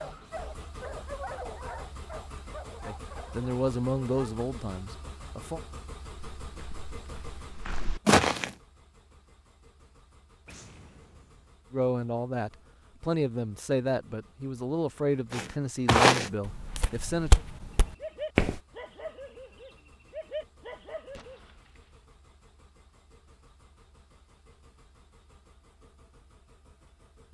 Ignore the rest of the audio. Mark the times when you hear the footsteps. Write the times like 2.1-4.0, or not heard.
6.4-8.5, 15.3-18.6.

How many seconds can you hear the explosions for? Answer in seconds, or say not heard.
2 s.